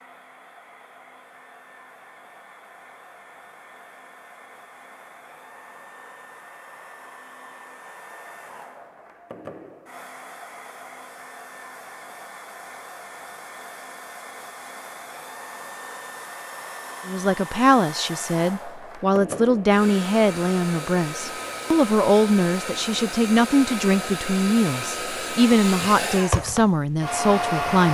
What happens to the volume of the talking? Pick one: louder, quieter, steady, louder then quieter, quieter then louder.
steady.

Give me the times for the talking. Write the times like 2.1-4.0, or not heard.
17.1-27.9.